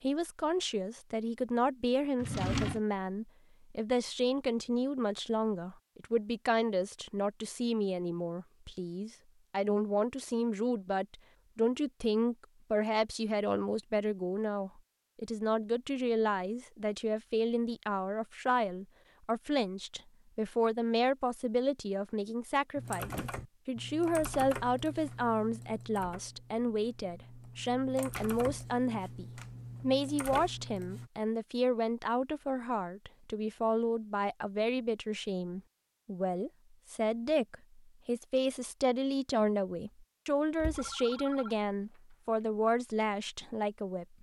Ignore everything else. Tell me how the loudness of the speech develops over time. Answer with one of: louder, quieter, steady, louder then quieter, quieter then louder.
steady.